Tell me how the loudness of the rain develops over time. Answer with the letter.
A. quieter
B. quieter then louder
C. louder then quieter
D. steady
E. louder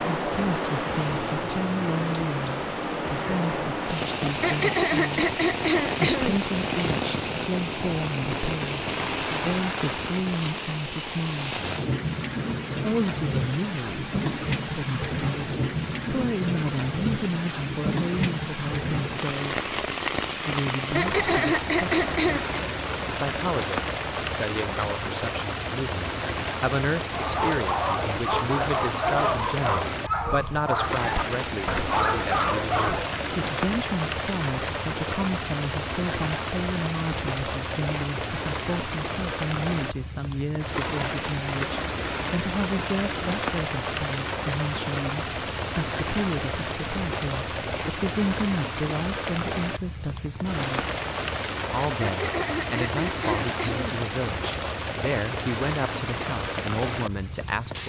D.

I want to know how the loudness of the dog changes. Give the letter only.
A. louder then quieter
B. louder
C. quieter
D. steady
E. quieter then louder
D.